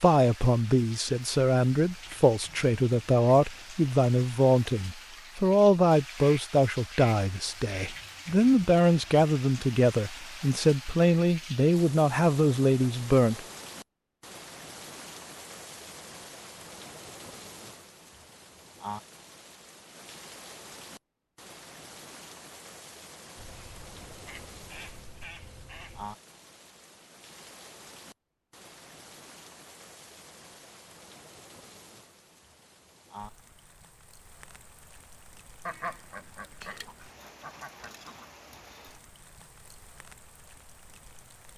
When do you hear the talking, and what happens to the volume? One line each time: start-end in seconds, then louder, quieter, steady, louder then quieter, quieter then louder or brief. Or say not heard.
0.0-13.4 steady.